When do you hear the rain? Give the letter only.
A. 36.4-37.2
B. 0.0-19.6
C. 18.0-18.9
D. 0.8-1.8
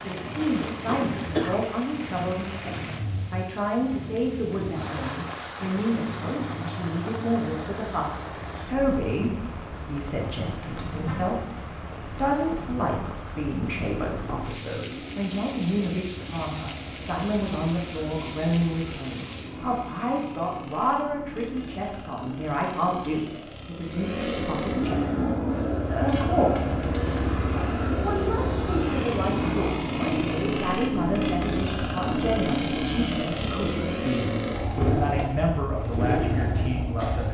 B.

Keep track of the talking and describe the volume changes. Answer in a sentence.
The volume of the talking stays about the same.